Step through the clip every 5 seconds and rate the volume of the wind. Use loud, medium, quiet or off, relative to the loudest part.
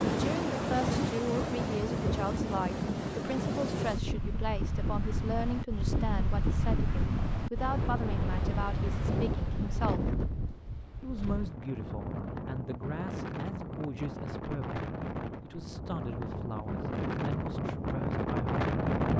loud, loud, medium, loud.